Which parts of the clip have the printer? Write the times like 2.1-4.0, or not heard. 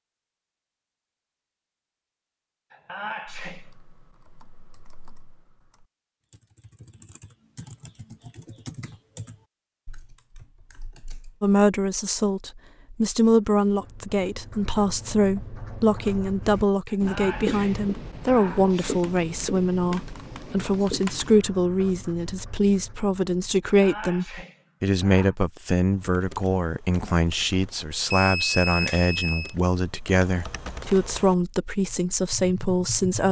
not heard.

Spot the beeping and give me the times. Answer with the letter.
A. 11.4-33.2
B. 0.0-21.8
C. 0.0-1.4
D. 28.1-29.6
D.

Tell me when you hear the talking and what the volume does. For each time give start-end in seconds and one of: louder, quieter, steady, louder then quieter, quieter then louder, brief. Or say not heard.
11.4-33.2 steady.